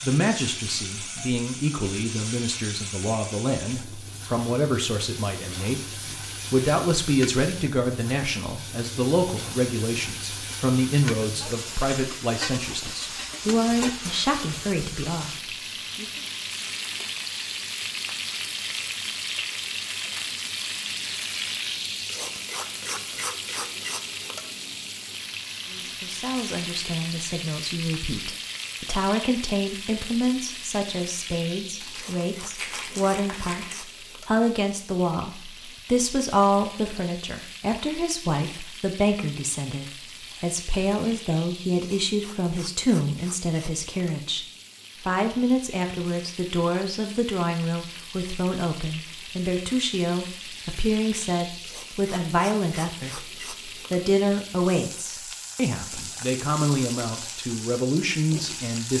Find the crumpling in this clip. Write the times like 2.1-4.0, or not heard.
31.8-33.9.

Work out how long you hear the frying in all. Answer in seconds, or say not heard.
59 s.